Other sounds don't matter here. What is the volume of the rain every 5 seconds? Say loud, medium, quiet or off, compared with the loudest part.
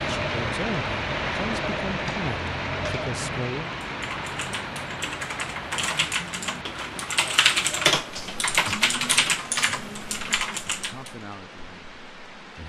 loud, medium, quiet.